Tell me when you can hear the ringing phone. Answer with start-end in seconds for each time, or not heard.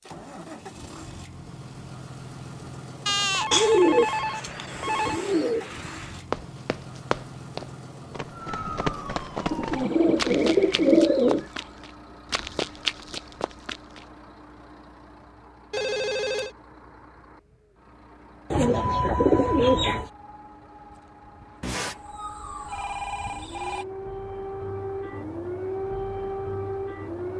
3.0-5.2, 15.7-16.6, 21.6-23.9.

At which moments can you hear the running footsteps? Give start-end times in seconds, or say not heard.
6.3-14.1.